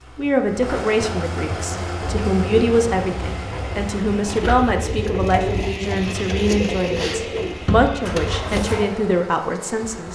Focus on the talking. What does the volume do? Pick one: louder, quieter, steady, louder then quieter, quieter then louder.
steady.